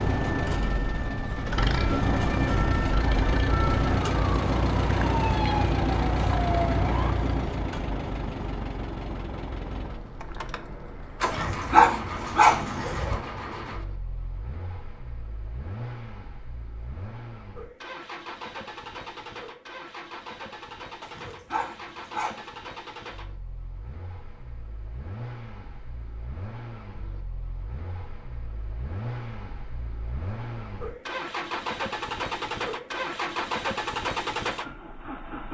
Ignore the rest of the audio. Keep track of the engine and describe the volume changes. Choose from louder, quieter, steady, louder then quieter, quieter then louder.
quieter then louder.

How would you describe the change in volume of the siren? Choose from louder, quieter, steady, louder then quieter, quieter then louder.
louder.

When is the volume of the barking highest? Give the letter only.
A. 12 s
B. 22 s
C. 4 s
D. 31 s
A.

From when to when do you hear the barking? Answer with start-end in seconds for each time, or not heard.
11.2-13.2, 21.0-22.4.